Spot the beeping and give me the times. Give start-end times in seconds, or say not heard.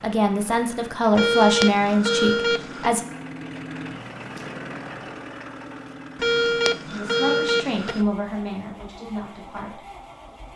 1.1-2.9, 6.2-8.1.